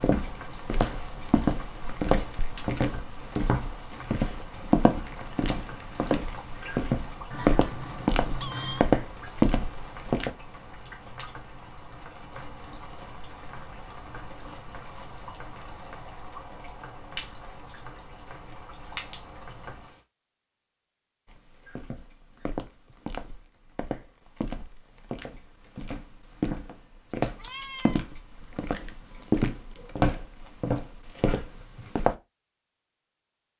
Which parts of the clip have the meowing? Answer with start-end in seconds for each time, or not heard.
7.3-8.9, 27.2-28.1.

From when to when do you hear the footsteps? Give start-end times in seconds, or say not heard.
0.0-10.3, 21.2-32.1.